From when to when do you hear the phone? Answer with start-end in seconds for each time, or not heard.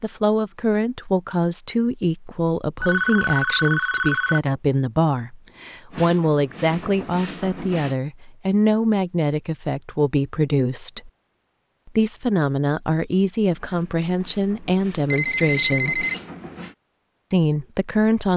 2.8-4.4, 15.1-16.2.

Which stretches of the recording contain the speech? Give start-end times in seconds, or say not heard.
0.0-11.1, 11.8-16.1, 17.3-18.3.